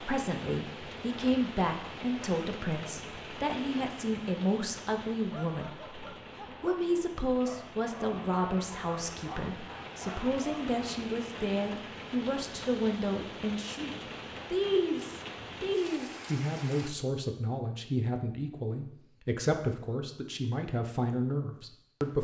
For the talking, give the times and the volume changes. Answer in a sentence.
The talking can be heard from 0.0 to 22.1 s, at a steady volume.